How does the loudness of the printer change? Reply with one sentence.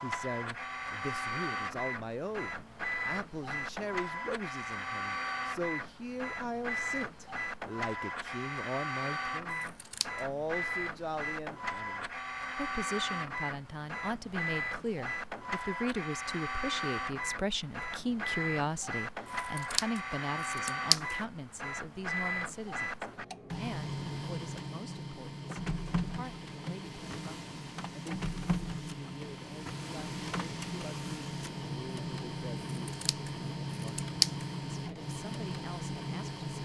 The loudness of the printer stays about the same.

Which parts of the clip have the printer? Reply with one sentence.
The printer can be heard from 0.0 to 36.6 s.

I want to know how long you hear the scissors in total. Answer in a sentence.
You can hear the scissors for 4 seconds altogether.